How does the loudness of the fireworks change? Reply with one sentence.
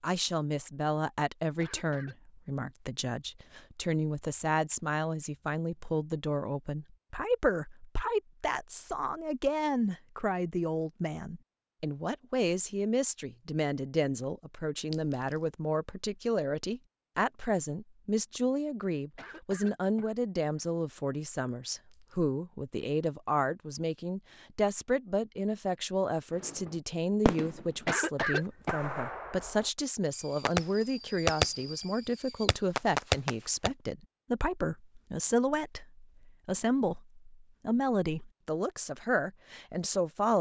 The volume of the fireworks goes down, then up.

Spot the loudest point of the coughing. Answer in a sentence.
The volume of the coughing peaks at 28 seconds.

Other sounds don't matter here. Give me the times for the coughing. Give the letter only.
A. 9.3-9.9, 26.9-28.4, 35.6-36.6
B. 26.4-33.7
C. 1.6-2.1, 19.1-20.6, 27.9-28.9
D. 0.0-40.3
C.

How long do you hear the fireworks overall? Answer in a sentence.
The fireworks can be heard for 7 seconds in total.